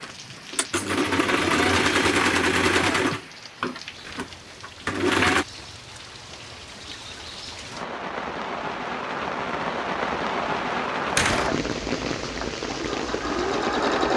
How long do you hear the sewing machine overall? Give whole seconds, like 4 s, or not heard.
8 s.